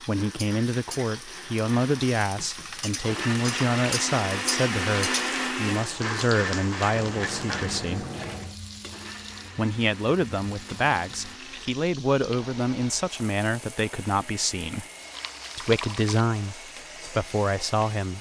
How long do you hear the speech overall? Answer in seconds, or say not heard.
16 s.